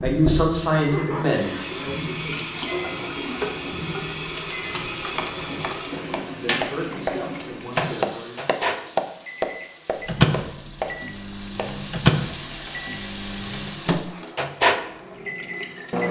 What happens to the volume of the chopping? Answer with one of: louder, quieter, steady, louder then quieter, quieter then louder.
louder then quieter.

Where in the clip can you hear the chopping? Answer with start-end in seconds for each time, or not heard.
5.2-11.7.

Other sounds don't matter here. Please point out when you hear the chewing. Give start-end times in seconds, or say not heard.
not heard.